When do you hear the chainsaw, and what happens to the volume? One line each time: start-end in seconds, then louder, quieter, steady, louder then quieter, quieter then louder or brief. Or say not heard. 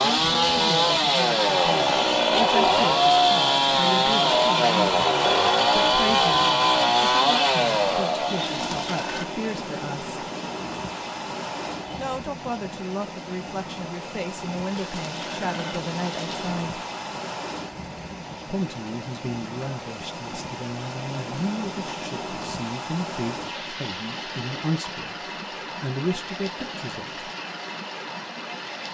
0.0-12.2 quieter.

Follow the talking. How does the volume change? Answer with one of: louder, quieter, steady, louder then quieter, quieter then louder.
steady.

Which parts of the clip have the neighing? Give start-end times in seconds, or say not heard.
8.3-9.2, 14.7-16.6.